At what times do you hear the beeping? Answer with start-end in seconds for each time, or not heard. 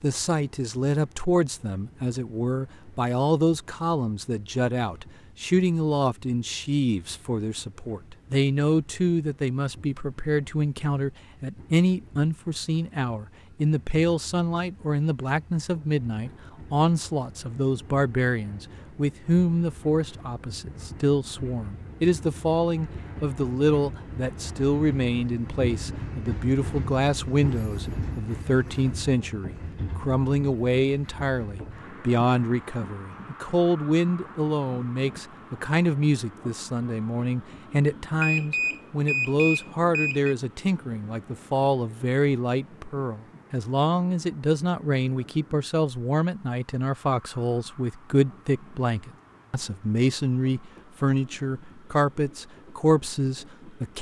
38.2-40.4.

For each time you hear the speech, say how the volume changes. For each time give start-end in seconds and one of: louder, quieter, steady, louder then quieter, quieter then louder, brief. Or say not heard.
0.0-53.9 steady.